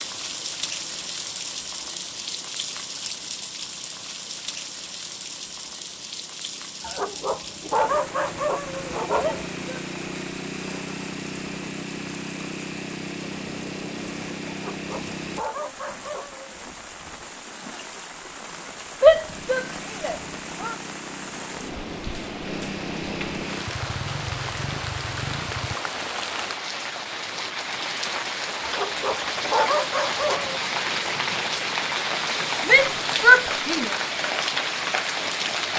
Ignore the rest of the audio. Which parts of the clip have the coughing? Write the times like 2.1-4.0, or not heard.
not heard.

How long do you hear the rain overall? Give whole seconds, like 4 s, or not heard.
36 s.